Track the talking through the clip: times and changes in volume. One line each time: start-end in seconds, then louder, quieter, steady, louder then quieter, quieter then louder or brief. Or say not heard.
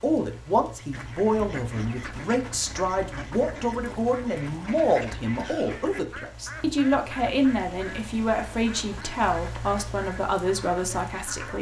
0.0-11.5 steady.